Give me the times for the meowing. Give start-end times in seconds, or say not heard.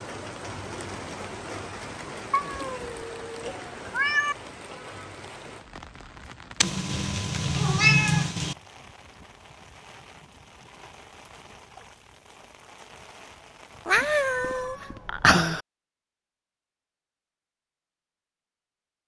2.3-4.3, 6.6-8.6, 13.8-15.6.